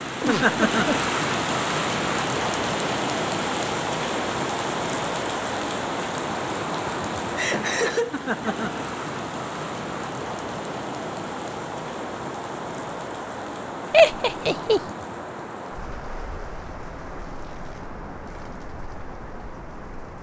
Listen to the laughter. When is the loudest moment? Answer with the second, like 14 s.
14 s.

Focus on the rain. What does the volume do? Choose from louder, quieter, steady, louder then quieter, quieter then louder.
quieter.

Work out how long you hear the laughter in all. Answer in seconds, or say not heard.
3 s.